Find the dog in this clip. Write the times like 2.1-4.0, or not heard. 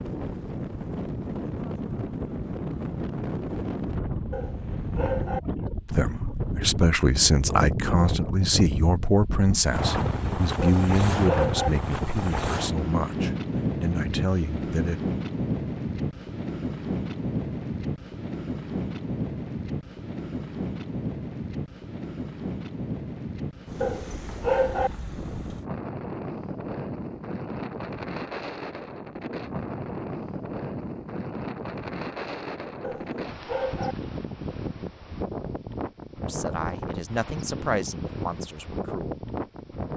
4.3-5.4, 10.6-11.7, 23.8-24.9, 32.8-34.0.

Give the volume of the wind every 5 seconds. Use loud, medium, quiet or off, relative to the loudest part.
loud, loud, loud, loud, medium, medium, medium, medium.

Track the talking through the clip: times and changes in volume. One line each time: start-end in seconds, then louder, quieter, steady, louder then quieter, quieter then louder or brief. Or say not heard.
5.9-15.0 quieter
36.2-39.1 brief.